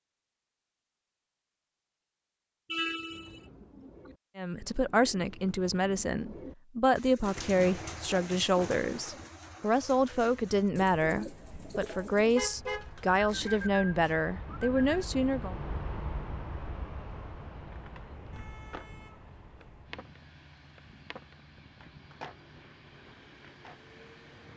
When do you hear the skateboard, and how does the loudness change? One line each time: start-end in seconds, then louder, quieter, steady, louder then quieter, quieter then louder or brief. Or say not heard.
17.6-24.5 quieter.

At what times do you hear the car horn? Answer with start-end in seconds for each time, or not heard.
2.7-3.4, 12.3-13.7, 18.3-19.6.